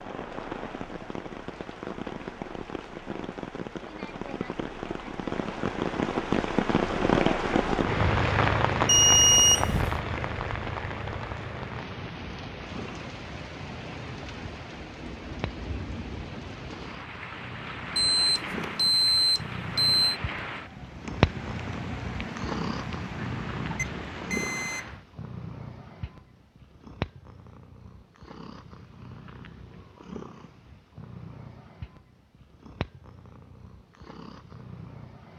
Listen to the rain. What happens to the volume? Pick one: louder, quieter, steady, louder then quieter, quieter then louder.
louder then quieter.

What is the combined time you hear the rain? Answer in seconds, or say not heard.
25 s.